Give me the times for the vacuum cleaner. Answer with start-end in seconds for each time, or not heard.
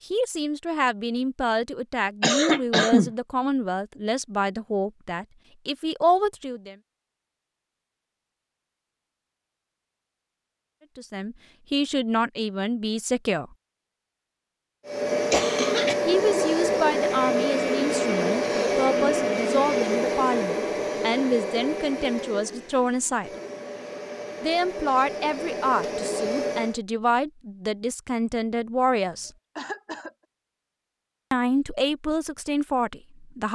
14.8-26.8.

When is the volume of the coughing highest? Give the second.
3 s.